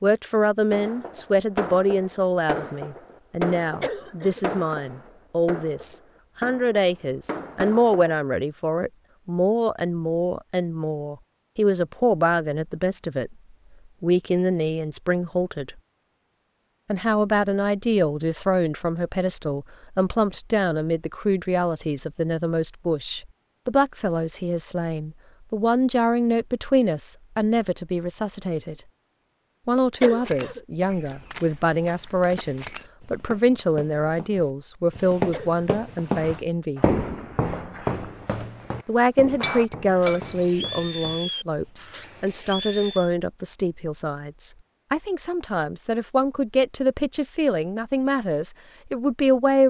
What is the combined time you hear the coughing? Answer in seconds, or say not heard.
2 s.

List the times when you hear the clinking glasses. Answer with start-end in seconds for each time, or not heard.
39.4-40.5.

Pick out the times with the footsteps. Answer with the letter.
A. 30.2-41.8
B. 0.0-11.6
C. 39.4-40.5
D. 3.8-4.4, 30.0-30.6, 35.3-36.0
A.